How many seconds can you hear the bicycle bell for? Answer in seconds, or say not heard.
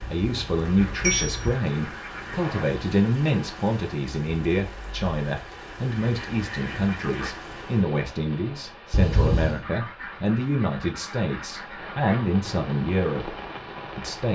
2 s.